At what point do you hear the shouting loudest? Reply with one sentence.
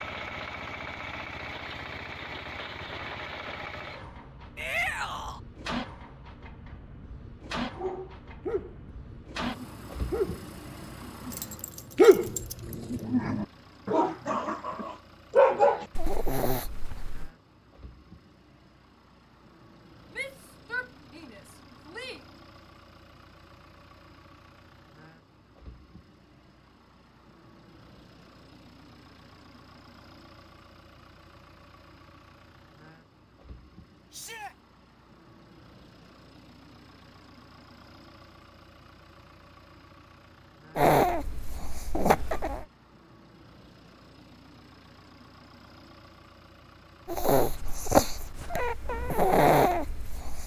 The loudest moment of the shouting is at 5 seconds.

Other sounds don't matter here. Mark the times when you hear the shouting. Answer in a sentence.
The shouting can be heard from 4.5 to 5.4 s, from 20.1 to 22.2 s and from 34.1 to 34.5 s.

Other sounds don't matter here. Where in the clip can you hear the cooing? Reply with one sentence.
The cooing can't be heard in this clip.